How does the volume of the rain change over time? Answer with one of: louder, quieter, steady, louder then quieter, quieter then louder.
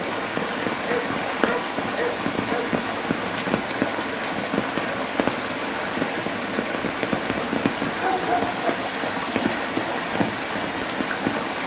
steady.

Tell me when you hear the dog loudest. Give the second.
8 s.